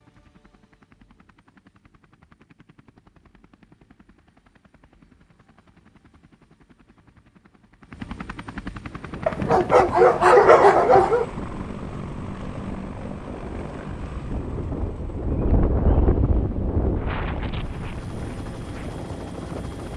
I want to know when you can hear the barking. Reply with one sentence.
You can hear the barking from 9.2 to 11.2 s.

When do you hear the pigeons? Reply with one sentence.
The pigeons can't be heard in this clip.